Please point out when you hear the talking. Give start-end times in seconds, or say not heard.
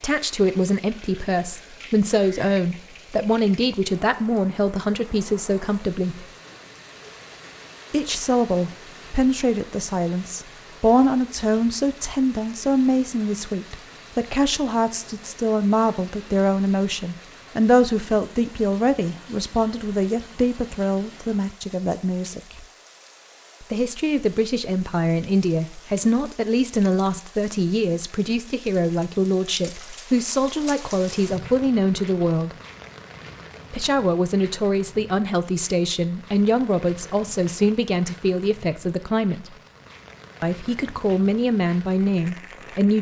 0.0-6.2, 7.9-22.6, 23.6-32.5, 33.7-39.5, 40.4-42.9.